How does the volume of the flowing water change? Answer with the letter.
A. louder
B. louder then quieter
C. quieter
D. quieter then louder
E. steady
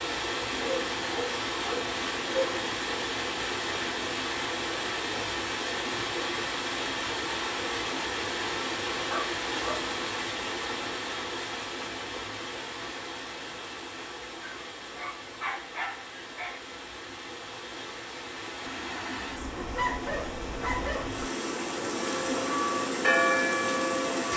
D.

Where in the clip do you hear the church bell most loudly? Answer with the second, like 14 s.
23 s.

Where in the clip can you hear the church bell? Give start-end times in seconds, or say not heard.
21.8-24.3.